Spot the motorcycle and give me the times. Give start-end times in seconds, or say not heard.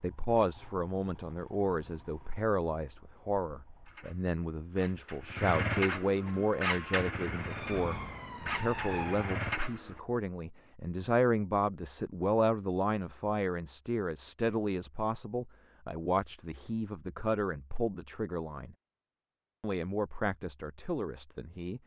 0.0-10.0.